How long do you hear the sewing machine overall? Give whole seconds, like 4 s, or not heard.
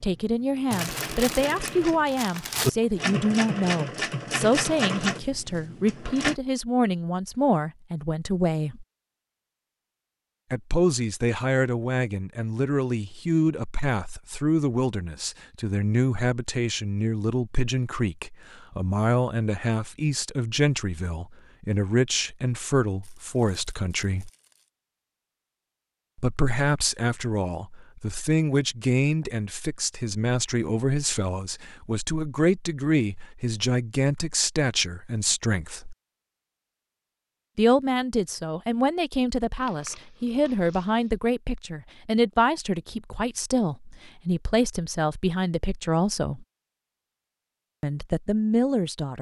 6 s.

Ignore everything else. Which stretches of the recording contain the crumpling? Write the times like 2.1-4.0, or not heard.
0.7-2.7, 23.0-24.7, 39.5-41.1.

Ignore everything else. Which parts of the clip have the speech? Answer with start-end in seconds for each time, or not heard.
0.0-8.8, 10.5-24.3, 26.1-36.0, 37.5-46.5, 47.8-49.1.